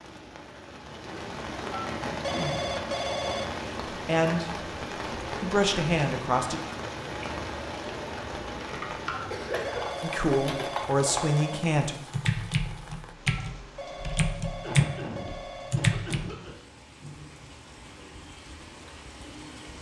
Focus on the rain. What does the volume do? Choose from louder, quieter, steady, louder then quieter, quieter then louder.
quieter.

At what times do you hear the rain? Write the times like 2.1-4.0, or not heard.
0.0-19.7.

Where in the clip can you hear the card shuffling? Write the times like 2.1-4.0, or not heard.
not heard.